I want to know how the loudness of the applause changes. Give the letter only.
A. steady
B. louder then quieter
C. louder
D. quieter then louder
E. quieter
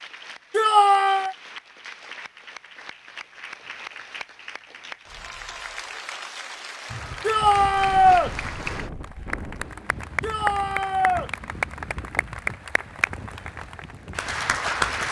C.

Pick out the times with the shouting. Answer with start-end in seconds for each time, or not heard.
0.5-1.4, 7.2-8.3, 10.2-11.3.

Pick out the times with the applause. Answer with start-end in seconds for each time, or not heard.
0.0-15.0.